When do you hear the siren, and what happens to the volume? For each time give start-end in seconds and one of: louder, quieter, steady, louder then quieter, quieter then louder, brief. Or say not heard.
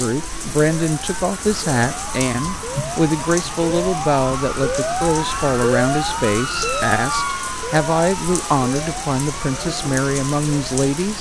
0.1-11.1 louder then quieter.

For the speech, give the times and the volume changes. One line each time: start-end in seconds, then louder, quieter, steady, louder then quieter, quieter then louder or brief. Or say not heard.
0.0-11.1 steady.